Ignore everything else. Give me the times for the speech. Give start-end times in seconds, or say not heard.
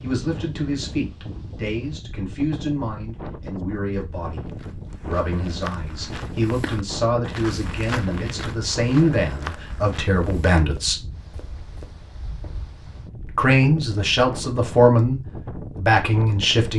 0.0-11.0, 13.2-16.7.